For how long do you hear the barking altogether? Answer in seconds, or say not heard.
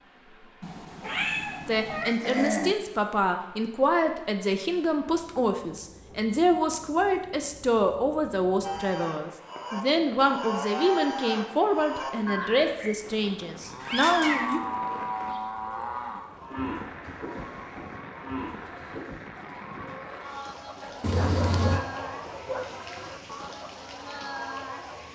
3 s.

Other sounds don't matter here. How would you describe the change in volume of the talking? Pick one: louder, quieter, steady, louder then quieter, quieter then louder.
steady.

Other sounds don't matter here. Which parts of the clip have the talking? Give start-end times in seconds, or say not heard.
1.6-14.6.